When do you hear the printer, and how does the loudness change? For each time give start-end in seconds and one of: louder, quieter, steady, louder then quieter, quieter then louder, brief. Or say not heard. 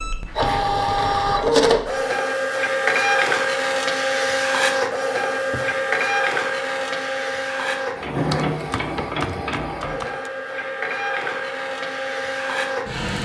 0.0-13.2 quieter.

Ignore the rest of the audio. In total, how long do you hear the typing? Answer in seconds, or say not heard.
2 s.